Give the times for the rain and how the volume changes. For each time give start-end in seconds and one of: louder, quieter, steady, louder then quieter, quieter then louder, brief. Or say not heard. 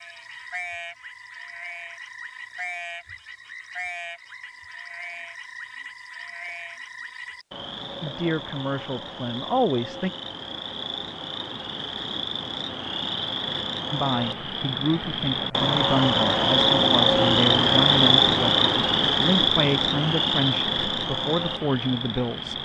not heard.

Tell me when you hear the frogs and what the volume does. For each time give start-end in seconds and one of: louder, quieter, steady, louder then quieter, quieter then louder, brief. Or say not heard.
0.0-22.6 louder.